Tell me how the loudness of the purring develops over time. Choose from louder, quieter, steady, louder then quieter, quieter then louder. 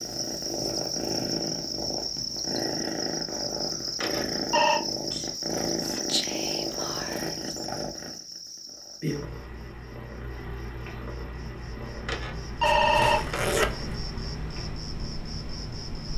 quieter.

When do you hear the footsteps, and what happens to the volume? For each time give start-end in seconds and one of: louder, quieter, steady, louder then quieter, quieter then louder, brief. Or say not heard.
not heard.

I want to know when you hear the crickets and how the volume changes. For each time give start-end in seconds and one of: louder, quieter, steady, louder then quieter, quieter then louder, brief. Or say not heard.
0.0-16.1 quieter then louder.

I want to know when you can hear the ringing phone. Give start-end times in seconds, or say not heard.
4.0-4.8, 12.1-13.6.